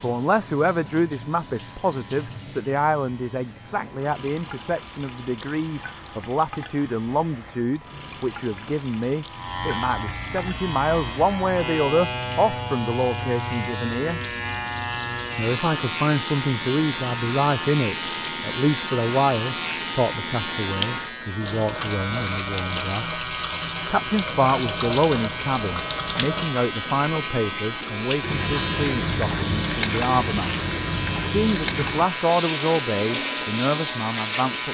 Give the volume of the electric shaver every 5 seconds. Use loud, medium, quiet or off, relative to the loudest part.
quiet, medium, loud, loud, loud, loud, loud.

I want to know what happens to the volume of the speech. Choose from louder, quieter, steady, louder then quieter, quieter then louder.
steady.